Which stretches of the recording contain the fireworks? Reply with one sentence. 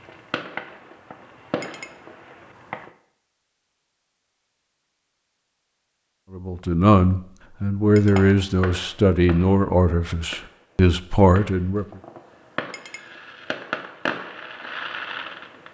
You can hear the fireworks from 0.0 to 2.9 s and from 8.0 to 15.6 s.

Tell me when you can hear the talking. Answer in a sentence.
You can hear the talking from 6.3 to 11.8 s.